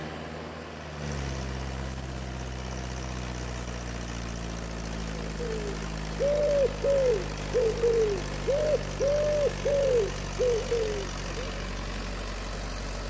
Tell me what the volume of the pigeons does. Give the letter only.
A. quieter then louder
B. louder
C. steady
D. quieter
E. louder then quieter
C.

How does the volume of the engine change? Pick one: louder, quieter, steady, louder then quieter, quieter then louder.
steady.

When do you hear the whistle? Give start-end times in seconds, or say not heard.
not heard.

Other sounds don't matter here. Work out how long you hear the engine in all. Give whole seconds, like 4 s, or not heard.
13 s.